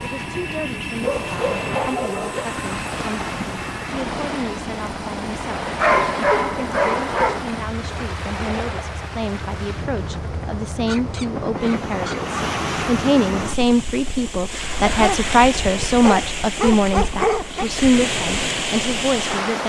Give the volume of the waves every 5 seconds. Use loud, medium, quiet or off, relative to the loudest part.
medium, medium, loud, loud.